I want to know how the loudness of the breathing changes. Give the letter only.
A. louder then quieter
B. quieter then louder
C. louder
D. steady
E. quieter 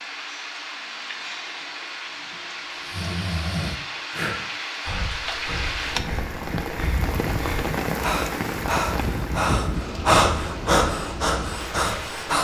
B.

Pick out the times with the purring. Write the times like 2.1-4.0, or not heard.
not heard.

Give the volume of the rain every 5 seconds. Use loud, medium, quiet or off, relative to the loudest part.
medium, loud, medium.